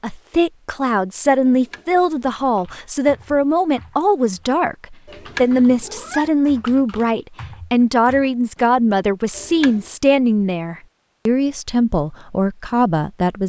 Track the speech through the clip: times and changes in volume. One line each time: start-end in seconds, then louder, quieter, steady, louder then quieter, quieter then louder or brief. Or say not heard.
0.0-13.4 steady.